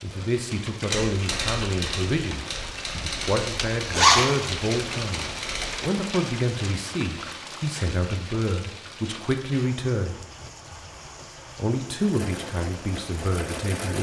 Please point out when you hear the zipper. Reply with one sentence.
The zipper can be heard from 3.7 to 4.5 s.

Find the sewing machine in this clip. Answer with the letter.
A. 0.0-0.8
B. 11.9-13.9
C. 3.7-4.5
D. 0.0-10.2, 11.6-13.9
B.